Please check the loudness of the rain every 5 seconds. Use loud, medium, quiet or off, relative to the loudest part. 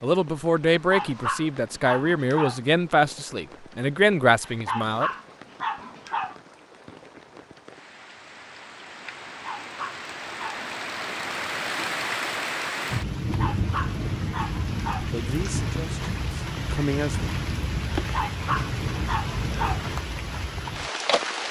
quiet, quiet, loud, loud, loud.